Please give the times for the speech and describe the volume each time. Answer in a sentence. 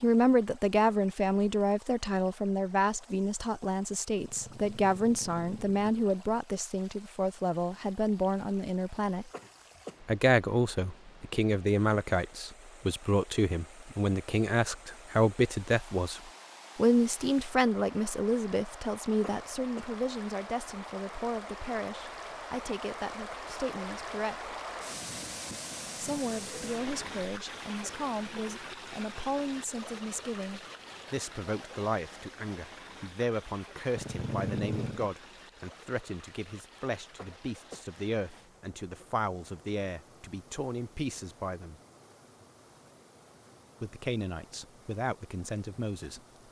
The speech can be heard from 0.0 to 9.2 s, at a steady volume; from 10.1 to 24.5 s, getting quieter; from 25.9 to 41.8 s, at a steady volume; and briefly from 43.8 to 46.2 s.